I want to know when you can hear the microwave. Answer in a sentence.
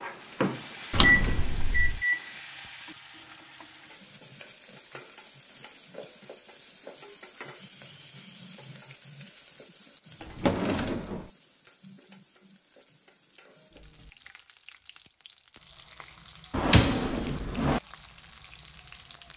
The microwave can be heard from 0.0 to 2.3 s.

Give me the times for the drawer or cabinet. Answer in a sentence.
You can hear the drawer or cabinet from 0.9 to 2.0 s, from 10.2 to 11.3 s and from 16.5 to 17.8 s.